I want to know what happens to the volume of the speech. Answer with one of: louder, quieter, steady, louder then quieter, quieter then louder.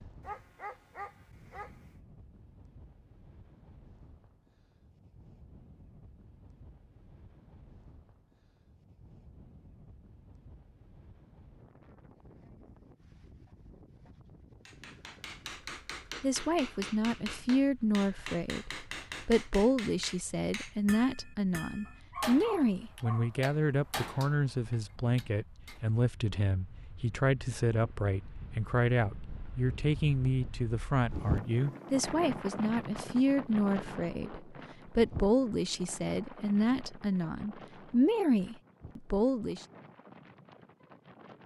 steady.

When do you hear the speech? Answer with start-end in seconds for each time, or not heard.
16.2-39.6.